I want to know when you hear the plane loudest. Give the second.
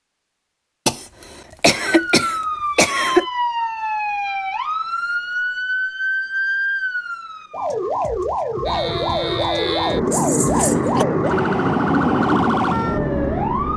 12 s.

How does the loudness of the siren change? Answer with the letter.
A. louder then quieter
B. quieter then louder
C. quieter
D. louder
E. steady
E.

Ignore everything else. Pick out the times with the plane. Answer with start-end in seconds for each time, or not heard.
8.7-13.7.